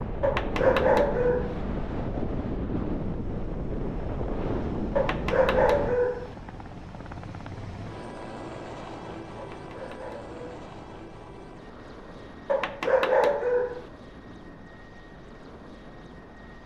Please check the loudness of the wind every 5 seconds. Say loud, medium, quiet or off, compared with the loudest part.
loud, medium, quiet, quiet.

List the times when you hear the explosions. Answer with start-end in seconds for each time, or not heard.
not heard.